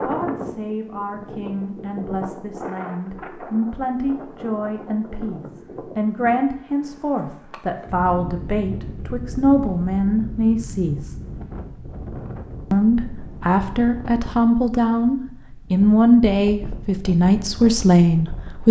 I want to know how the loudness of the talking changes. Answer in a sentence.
The loudness of the talking goes up.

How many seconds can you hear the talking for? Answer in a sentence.
You can hear the talking for 17 seconds altogether.